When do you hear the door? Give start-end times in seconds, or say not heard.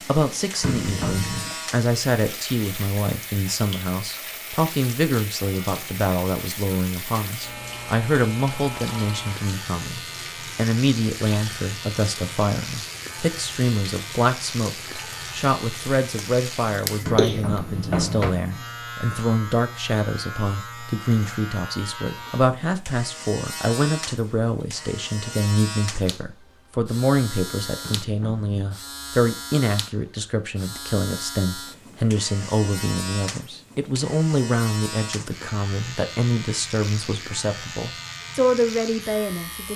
0.6-1.6, 17.1-18.3, 27.8-28.8.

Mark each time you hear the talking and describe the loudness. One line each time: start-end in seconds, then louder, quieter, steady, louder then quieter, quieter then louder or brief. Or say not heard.
0.1-39.7 steady.